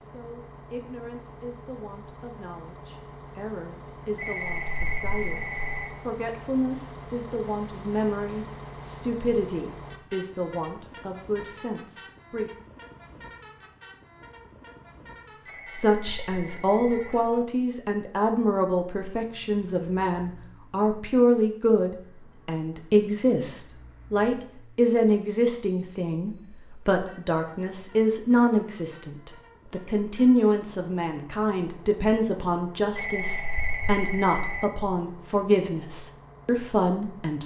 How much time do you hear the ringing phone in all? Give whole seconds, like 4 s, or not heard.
5 s.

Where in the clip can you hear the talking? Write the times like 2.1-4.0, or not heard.
0.1-12.5, 15.7-37.4.